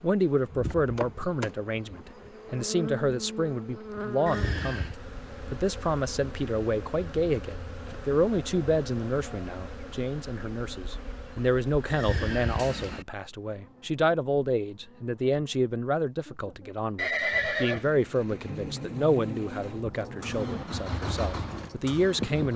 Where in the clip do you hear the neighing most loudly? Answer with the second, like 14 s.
17 s.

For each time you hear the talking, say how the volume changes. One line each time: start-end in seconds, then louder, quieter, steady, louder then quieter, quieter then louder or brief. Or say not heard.
0.0-22.5 steady.